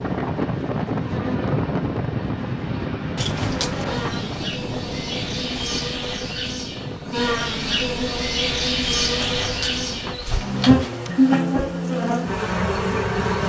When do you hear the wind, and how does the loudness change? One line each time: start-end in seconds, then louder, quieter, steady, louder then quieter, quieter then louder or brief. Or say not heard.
0.0-10.2 quieter.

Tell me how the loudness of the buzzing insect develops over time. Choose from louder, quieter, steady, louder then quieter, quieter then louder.
louder.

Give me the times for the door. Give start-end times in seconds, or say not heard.
3.1-4.2, 9.2-11.1.